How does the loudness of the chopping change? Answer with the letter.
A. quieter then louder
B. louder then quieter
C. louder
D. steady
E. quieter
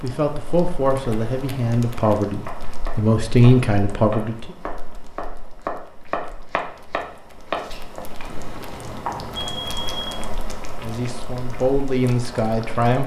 B.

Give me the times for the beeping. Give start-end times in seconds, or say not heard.
7.5-10.2.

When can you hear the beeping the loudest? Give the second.
10 s.